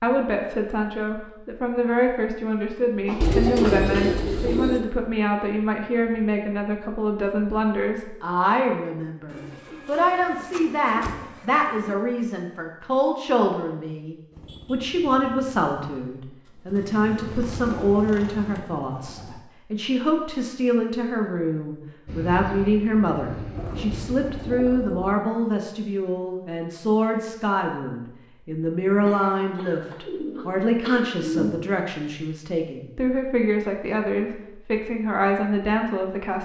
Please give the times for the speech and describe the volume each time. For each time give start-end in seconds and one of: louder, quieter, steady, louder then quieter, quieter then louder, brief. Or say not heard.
0.0-36.3 steady.